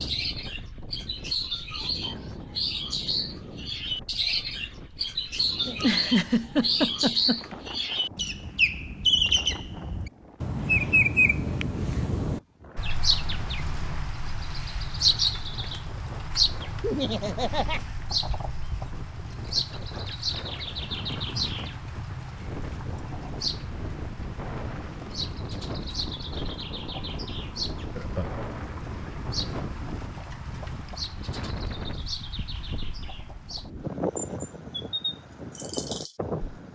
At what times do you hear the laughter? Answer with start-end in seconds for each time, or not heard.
5.7-7.5, 16.8-17.8, 27.9-28.4.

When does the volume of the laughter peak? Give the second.
6 s.